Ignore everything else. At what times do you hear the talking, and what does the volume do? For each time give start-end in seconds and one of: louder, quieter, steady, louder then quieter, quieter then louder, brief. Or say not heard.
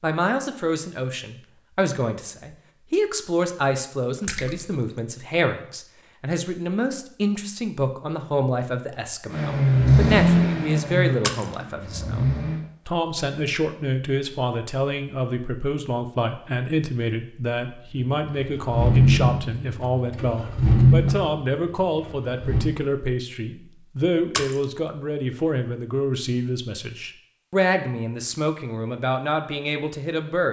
0.0-30.4 steady.